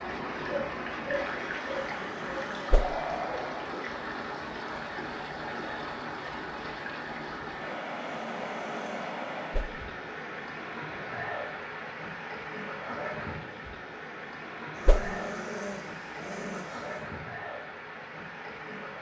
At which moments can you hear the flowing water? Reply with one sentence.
The flowing water can be heard from 0.0 to 18.9 s.